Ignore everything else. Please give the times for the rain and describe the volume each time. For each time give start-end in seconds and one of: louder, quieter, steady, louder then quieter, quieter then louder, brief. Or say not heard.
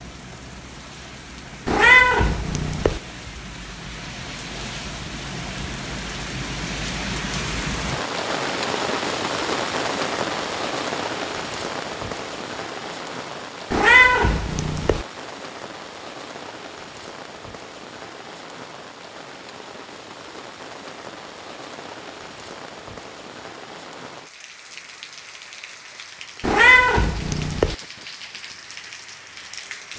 0.0-29.9 louder then quieter.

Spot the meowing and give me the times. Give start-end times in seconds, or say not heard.
1.6-3.0, 13.7-15.1, 26.4-27.8.